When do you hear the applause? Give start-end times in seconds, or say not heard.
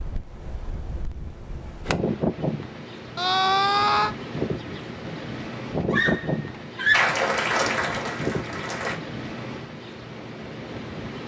6.9-8.9.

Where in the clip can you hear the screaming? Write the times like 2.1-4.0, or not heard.
3.1-4.2, 5.8-7.2.